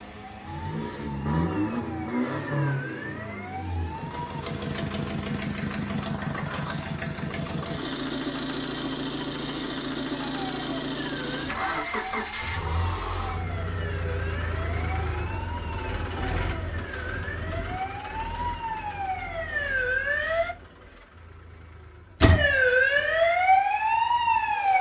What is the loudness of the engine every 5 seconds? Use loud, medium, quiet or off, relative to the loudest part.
loud, loud, loud, medium, quiet.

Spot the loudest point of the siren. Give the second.
23 s.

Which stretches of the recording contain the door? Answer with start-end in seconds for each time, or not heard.
22.2-22.6.